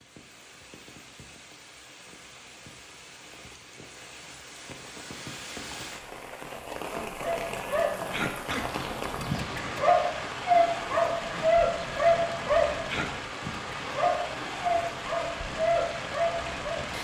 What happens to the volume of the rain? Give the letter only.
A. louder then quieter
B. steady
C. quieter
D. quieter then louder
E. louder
E.